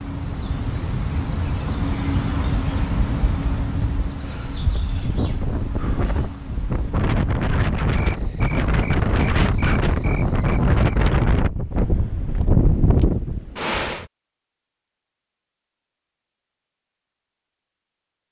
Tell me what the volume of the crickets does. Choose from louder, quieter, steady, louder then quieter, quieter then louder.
quieter.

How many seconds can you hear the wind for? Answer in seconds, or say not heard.
14 s.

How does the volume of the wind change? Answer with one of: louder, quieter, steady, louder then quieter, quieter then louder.
louder.